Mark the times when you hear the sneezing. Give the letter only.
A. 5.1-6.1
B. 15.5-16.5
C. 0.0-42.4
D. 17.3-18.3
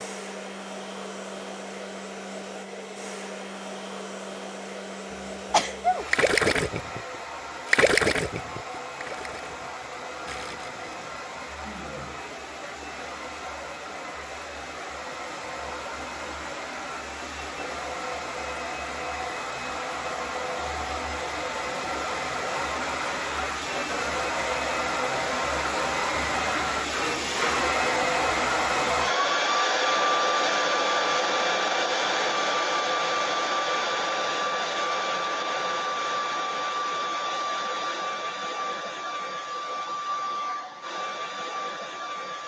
A.